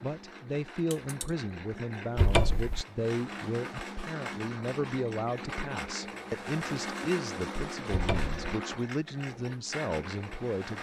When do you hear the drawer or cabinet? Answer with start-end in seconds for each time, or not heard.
2.1-2.9, 7.9-8.3.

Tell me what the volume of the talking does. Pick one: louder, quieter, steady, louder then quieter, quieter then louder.
steady.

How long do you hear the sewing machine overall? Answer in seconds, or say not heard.
11 s.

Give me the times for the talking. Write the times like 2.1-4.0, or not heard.
0.0-10.7.